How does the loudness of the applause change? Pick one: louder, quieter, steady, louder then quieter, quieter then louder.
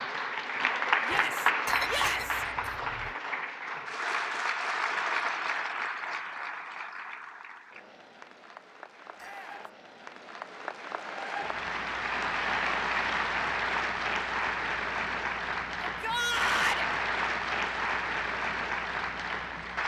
quieter then louder.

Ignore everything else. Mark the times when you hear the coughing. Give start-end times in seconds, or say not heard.
1.6-3.1.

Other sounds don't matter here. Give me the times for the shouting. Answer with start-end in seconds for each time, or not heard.
1.0-2.5, 9.2-9.7, 15.8-16.9.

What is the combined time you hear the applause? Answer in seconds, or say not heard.
20 s.